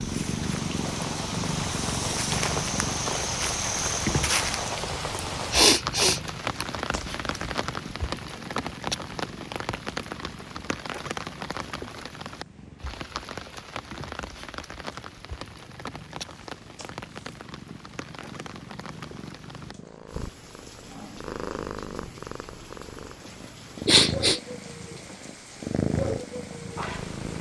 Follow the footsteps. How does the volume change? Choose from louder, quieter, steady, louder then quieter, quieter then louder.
louder.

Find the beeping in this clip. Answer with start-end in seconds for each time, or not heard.
not heard.